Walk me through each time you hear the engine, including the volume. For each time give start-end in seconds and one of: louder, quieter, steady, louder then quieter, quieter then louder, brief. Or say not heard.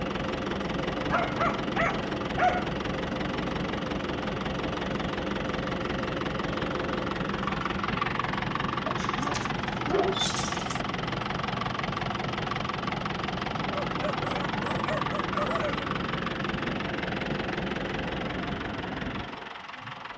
0.0-20.1 steady.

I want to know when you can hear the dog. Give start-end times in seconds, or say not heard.
1.1-2.7, 8.8-10.8, 13.8-15.9.